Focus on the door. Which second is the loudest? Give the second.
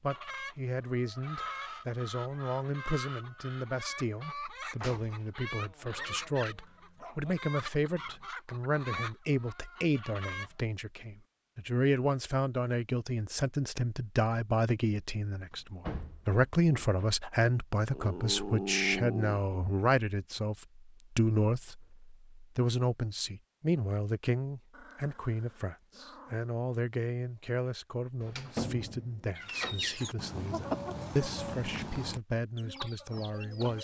29 s.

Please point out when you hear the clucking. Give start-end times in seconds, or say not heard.
0.1-10.6, 29.4-33.7.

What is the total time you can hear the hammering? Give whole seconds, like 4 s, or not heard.
not heard.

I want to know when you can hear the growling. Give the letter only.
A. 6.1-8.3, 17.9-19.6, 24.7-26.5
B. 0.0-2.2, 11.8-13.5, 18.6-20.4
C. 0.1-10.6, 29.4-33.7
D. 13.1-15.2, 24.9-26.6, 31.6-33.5
A.